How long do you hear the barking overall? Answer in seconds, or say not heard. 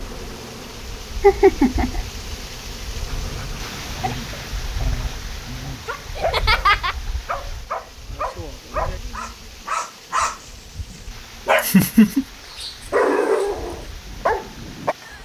12 s.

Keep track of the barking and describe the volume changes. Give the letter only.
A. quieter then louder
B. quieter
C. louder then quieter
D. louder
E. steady
D.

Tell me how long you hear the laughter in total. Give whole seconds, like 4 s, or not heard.
2 s.